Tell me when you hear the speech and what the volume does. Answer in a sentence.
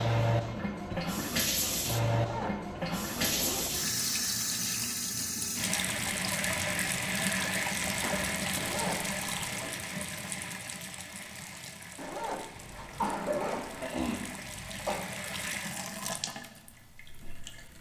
The speech can't be heard in this clip.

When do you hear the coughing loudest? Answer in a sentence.
The volume of the coughing peaks at 13 seconds.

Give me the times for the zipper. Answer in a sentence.
The zipper can be heard from 2.1 to 3.8 s, from 8.6 to 9.8 s and from 11.9 to 13.8 s.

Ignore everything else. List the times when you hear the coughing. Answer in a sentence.
You can hear the coughing from 0.8 to 1.4 s, from 8.0 to 8.4 s and from 12.6 to 15.0 s.